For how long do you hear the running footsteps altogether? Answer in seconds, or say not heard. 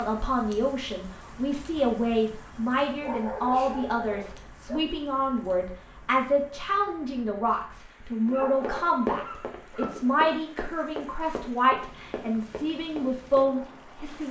5 s.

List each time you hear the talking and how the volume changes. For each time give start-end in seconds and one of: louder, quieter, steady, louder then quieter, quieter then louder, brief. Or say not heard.
0.0-14.2 steady.